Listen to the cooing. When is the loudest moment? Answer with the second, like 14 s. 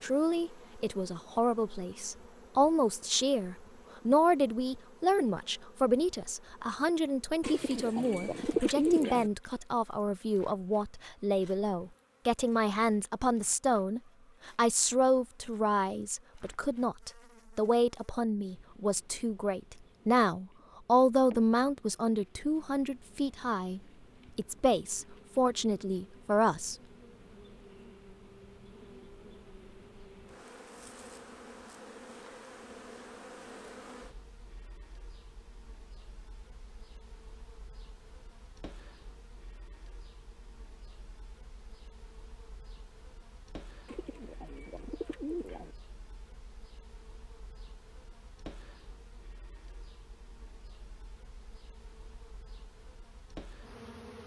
9 s.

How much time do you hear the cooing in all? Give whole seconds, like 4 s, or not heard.
4 s.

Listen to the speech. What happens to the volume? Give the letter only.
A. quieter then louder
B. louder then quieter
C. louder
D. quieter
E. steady
E.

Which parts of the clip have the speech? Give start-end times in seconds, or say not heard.
0.0-26.8.